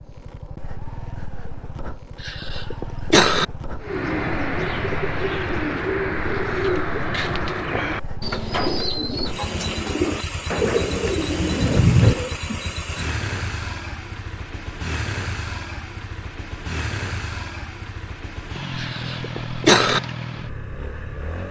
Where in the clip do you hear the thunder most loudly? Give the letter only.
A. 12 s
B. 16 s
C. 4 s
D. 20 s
A.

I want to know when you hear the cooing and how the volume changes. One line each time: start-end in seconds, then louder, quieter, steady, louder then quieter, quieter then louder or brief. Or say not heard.
3.8-12.4 steady.